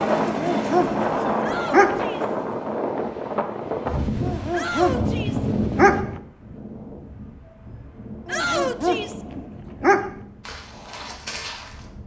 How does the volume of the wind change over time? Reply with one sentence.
The loudness of the wind goes down.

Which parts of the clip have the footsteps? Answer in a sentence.
You can hear the footsteps from 10.4 to 11.9 s.